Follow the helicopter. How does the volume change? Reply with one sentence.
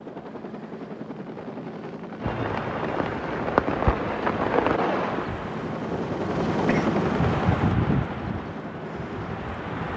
The loudness of the helicopter goes up, then down.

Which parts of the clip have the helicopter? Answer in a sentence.
You can hear the helicopter from 0.0 to 9.9 s.